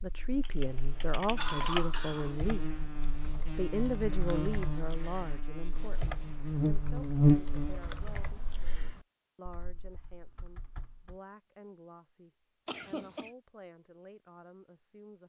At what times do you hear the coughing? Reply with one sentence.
You can hear the coughing from 1.4 to 2.4 s and from 12.7 to 13.3 s.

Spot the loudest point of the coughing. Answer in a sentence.
The volume of the coughing peaks at 2 seconds.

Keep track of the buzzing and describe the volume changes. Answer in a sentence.
The loudness of the buzzing goes up.